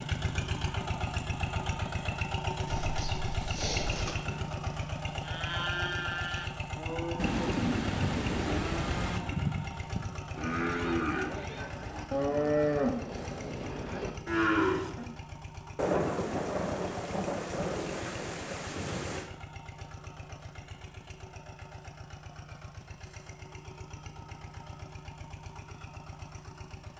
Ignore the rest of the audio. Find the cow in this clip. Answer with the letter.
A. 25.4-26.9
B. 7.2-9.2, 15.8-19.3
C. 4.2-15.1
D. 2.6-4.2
C.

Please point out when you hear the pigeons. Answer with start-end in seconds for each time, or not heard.
2.6-4.2.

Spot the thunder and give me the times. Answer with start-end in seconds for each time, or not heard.
7.2-9.2, 15.8-19.3.